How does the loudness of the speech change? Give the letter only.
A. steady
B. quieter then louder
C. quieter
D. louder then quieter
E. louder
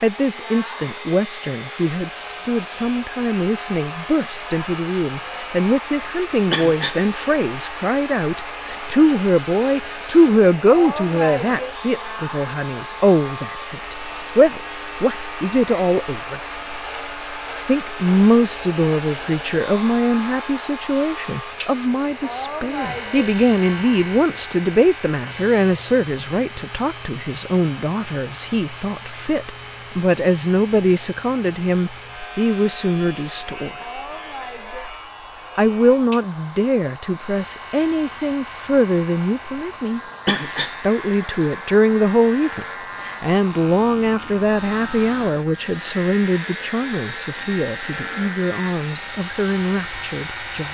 A.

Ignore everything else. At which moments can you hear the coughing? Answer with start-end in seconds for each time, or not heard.
6.5-7.0, 40.2-40.8.